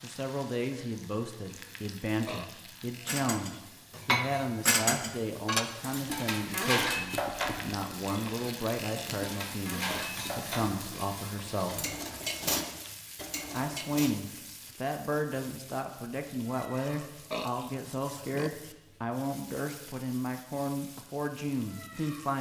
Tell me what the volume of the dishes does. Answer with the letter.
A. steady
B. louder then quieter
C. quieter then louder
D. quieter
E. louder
C.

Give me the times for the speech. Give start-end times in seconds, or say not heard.
0.0-11.9, 13.5-22.3.